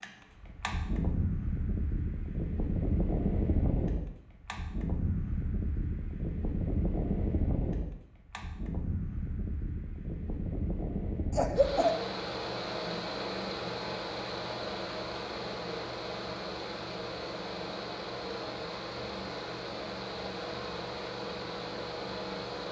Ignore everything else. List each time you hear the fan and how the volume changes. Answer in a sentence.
The fan can be heard from 0.0 to 22.6 s, at a steady volume.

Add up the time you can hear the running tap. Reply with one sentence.
The running tap can't be heard in this clip.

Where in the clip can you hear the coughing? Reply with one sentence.
The coughing can be heard from 11.3 to 11.9 s.